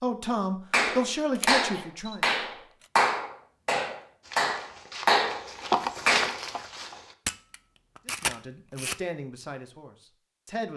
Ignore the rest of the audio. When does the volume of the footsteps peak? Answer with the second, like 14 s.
6 s.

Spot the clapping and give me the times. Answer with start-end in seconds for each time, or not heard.
0.7-6.4.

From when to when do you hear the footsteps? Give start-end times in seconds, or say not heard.
4.2-7.2.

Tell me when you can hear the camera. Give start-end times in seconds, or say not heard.
1.4-2.1, 7.2-8.9.